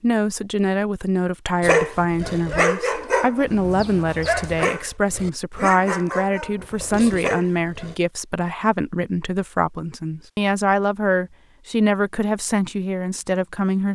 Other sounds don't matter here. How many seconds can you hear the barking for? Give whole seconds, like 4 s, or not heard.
6 s.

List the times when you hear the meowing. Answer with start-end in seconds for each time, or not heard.
not heard.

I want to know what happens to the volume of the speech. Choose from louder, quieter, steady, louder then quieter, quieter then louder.
steady.